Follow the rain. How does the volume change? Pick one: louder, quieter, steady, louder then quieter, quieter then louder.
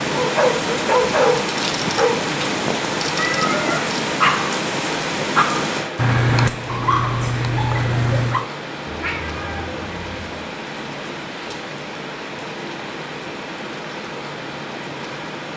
quieter.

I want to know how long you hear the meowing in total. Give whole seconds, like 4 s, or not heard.
2 s.